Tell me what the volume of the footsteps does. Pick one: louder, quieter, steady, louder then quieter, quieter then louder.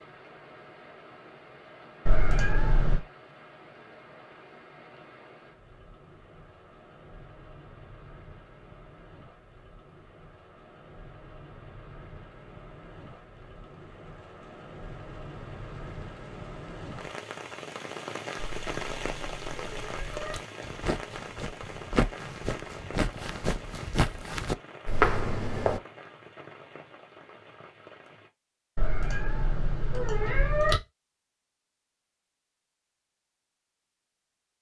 louder.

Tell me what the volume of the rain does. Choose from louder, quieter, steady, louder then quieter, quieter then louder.
louder then quieter.